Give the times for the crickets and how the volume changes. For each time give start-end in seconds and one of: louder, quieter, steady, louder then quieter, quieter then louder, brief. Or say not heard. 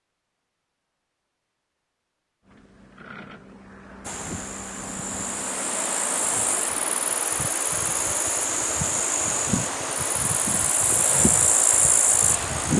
4.0-12.7 louder.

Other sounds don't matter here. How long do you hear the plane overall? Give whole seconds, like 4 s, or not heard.
5 s.